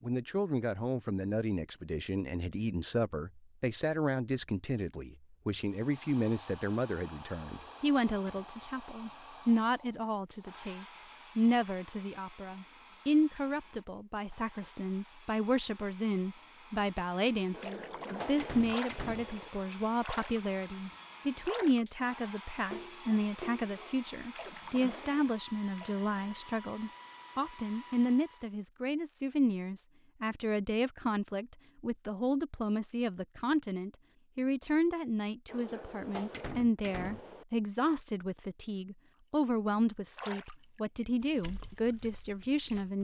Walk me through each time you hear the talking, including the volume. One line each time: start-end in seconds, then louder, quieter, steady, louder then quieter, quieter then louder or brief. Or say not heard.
0.0-42.9 steady.